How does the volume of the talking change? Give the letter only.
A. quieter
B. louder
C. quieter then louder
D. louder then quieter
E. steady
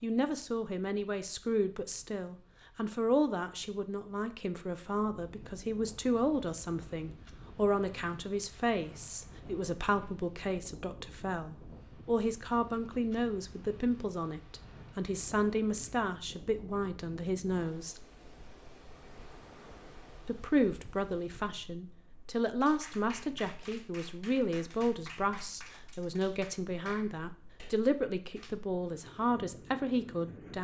E.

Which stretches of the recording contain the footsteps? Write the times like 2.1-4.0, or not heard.
not heard.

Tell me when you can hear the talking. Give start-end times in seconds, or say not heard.
0.0-18.0, 20.2-30.5.